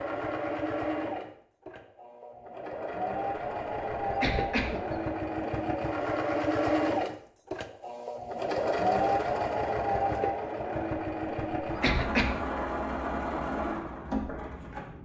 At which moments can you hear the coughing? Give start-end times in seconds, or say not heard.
4.0-5.0, 11.6-12.3.